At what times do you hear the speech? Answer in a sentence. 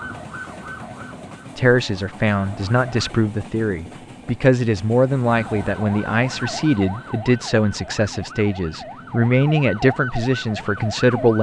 The speech can be heard from 1.6 to 11.3 s.